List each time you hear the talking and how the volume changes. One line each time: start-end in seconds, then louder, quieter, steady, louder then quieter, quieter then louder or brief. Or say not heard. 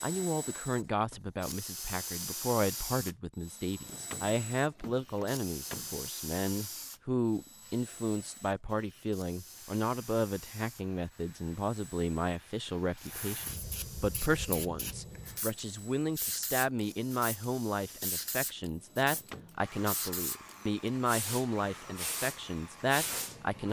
0.0-23.6 steady.